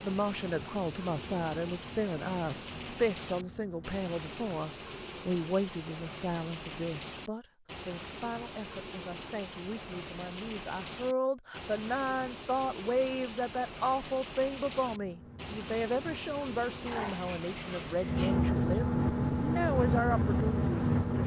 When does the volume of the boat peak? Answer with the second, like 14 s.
19 s.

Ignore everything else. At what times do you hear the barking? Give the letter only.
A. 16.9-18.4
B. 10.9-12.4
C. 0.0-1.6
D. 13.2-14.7
A.